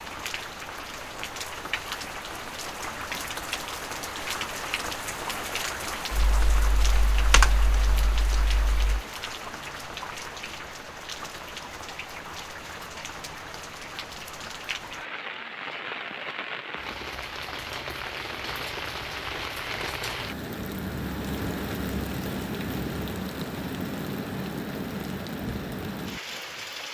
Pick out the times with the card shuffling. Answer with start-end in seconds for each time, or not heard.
not heard.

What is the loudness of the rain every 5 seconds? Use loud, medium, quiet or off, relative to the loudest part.
loud, loud, medium, loud, loud, loud.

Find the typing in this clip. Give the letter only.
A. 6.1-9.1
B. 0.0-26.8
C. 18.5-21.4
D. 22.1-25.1
A.